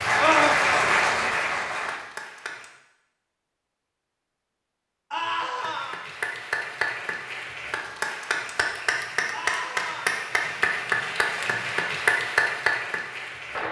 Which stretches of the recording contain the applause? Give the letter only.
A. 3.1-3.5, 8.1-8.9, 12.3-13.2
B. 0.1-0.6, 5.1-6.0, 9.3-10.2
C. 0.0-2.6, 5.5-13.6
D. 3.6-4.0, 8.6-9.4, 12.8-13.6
C.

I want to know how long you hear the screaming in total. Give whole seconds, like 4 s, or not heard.
2 s.